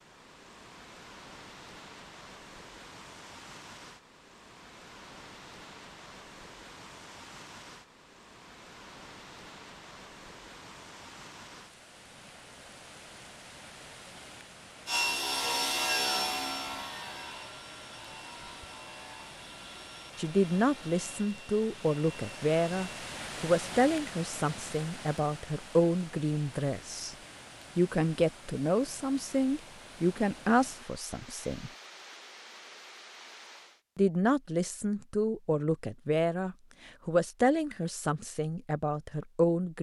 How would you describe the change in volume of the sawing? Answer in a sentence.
The volume of the sawing goes down.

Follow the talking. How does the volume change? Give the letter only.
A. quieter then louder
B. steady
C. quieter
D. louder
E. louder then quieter
B.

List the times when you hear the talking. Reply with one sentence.
You can hear the talking from 20.1 to 27.1 s, from 27.8 to 31.7 s and from 34.0 to 39.7 s.